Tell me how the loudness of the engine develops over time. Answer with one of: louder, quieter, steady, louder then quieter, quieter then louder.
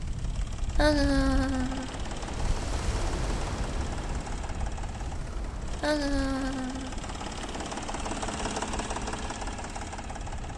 louder.